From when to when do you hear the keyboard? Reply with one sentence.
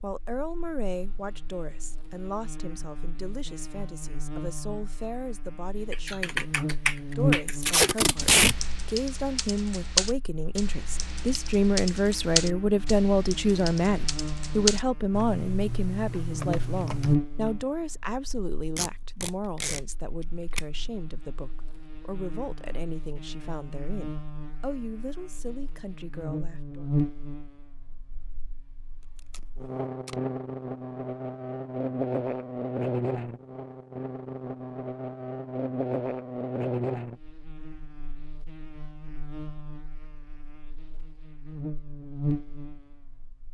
You can hear the keyboard from 5.9 to 17.6 s.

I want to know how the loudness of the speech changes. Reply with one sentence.
The loudness of the speech goes up, then down.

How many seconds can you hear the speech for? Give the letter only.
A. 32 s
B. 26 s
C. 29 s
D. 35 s
B.